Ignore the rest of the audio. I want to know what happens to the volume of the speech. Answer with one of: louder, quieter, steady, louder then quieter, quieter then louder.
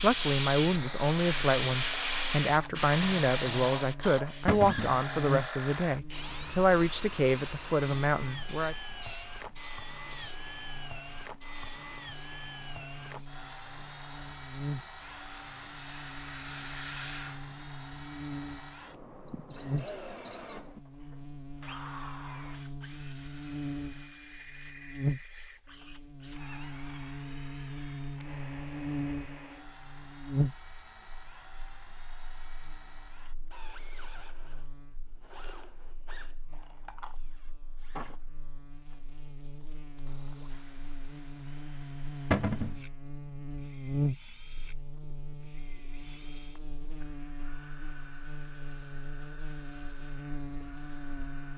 steady.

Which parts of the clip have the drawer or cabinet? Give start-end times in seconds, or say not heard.
4.5-5.0, 42.3-42.8.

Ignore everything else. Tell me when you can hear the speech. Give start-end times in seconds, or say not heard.
0.0-8.8.